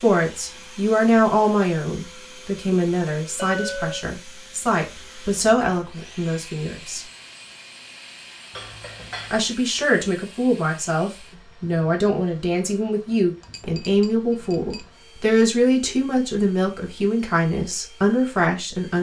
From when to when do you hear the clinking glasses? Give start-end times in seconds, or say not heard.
3.4-4.0, 8.6-9.4, 13.4-14.8.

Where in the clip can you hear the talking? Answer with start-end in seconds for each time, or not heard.
0.0-7.0, 9.3-18.9.